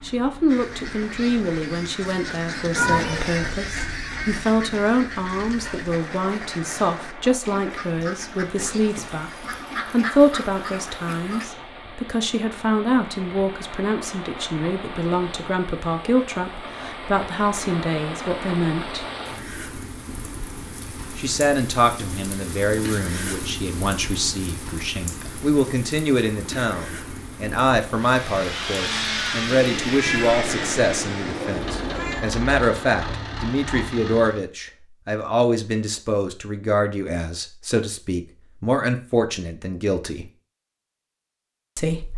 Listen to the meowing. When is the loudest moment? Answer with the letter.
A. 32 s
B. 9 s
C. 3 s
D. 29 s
C.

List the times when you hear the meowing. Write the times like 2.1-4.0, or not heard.
2.8-3.5, 29.6-32.2.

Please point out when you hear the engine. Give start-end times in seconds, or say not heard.
27.9-34.5.